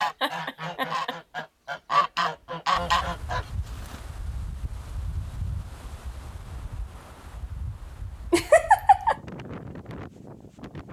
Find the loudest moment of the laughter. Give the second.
9 s.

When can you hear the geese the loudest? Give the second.
3 s.